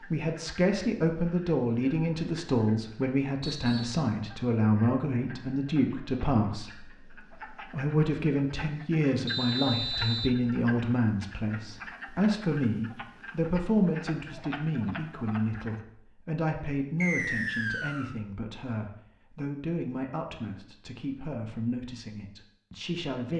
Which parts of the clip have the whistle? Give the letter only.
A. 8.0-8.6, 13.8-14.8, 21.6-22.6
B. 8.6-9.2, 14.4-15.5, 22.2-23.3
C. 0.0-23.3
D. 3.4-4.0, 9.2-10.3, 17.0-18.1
D.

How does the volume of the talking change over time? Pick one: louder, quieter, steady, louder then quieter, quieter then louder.
quieter.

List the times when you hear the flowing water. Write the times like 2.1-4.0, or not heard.
not heard.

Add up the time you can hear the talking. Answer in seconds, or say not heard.
23 s.